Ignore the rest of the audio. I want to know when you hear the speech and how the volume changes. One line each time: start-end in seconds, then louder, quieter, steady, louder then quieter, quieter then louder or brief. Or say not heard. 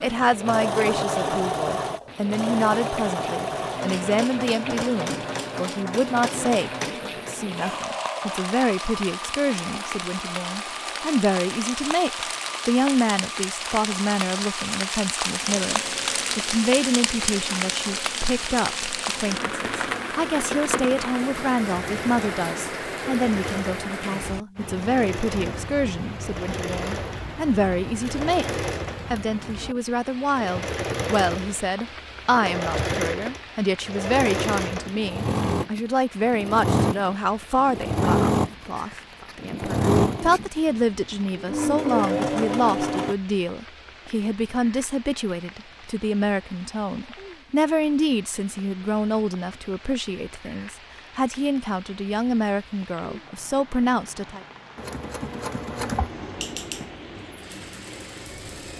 0.0-54.4 steady.